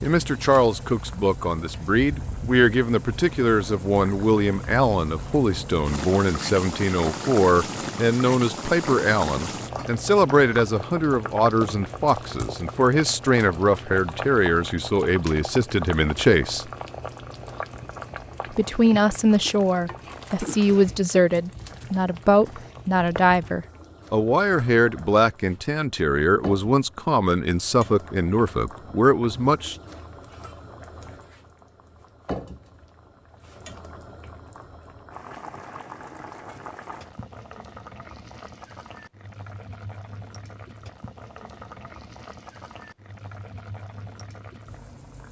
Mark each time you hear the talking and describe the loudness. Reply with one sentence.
You can hear the talking from 0.0 to 16.6 s, at a steady volume; and from 18.5 to 29.8 s, at a steady volume.